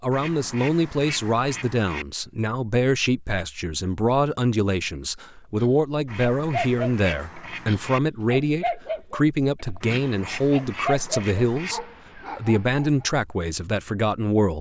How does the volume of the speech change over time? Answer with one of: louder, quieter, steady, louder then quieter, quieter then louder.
steady.